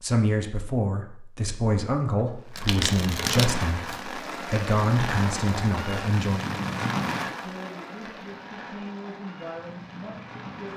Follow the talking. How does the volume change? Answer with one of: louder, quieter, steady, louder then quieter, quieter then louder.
quieter.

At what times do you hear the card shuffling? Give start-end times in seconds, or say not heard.
2.1-4.0.